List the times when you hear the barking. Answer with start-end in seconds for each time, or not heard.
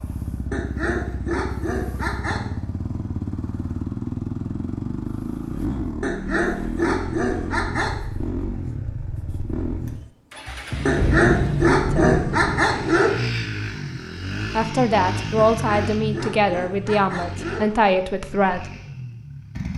0.5-2.5, 6.0-8.0, 10.8-13.2, 15.3-17.7.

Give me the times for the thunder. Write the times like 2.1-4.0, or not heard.
10.9-13.0.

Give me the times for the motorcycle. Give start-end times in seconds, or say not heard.
0.0-19.7.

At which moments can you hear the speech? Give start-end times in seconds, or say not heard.
11.9-12.3, 14.5-18.6.